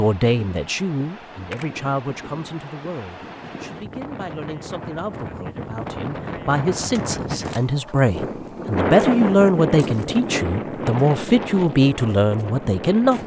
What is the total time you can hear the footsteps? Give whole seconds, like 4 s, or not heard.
not heard.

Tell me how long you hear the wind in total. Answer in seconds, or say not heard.
13 s.